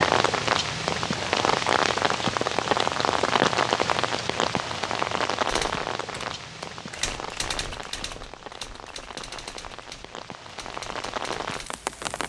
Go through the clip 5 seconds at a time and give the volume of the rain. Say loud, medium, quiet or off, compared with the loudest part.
loud, medium, medium.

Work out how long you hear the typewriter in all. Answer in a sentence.
You can hear the typewriter for 6 seconds altogether.